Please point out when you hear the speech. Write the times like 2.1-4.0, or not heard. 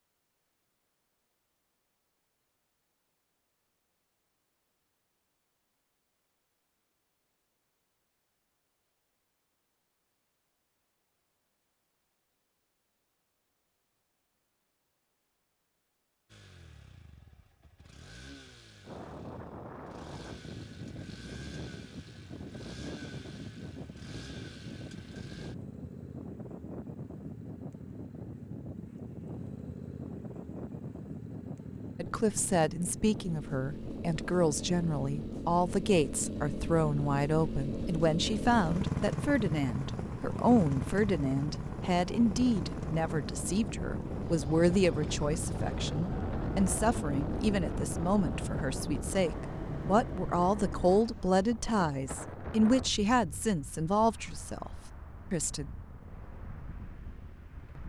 32.0-54.7, 55.3-55.7.